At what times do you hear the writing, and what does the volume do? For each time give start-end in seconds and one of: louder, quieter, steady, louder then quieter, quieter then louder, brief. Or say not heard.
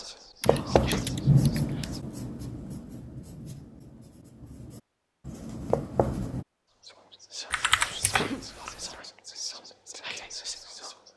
0.5-6.5 quieter then louder.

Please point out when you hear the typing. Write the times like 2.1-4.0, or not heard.
0.4-1.8, 7.5-8.8.